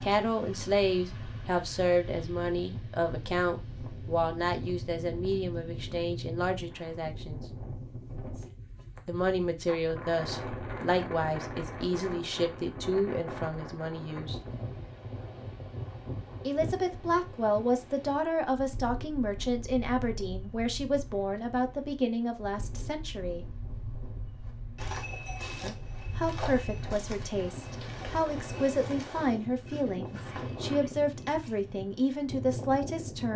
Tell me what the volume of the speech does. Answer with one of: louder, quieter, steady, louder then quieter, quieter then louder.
steady.